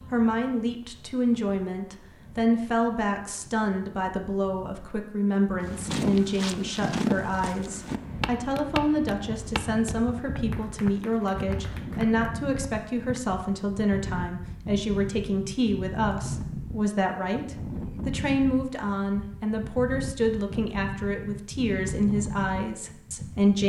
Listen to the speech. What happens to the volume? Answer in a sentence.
The loudness of the speech stays about the same.